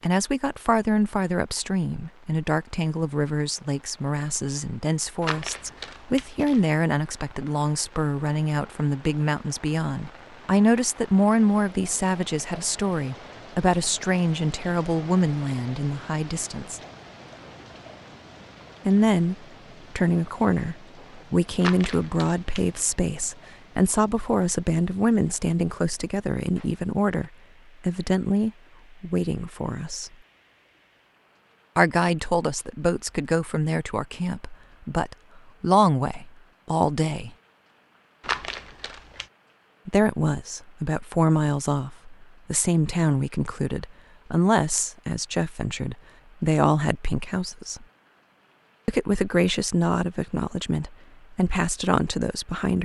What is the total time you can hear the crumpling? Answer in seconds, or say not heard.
4 s.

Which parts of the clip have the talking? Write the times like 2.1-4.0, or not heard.
0.0-16.8, 18.9-19.4, 19.9-30.1, 31.8-37.3, 39.9-47.9, 48.9-52.8.